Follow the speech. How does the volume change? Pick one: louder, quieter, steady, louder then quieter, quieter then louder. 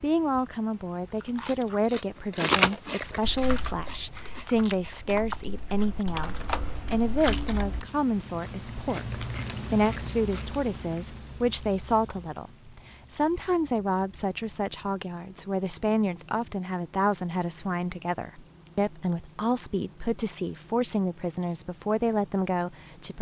steady.